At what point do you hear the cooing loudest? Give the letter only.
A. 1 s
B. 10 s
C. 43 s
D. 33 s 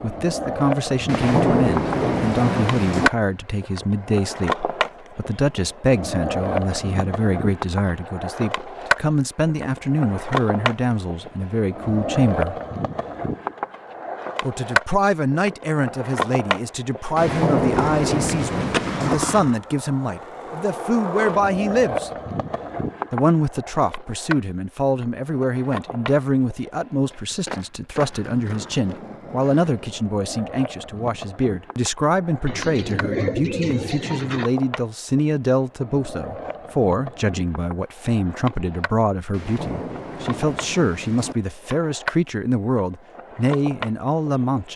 D.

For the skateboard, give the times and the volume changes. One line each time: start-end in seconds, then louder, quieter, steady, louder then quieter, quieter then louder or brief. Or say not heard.
0.0-44.7 quieter.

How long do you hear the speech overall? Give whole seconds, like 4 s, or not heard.
42 s.